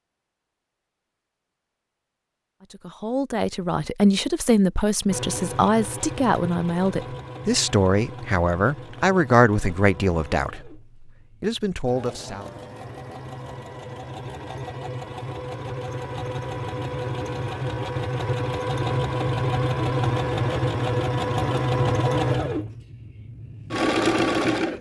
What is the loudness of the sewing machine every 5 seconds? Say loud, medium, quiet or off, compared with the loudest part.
off, quiet, quiet, loud, loud.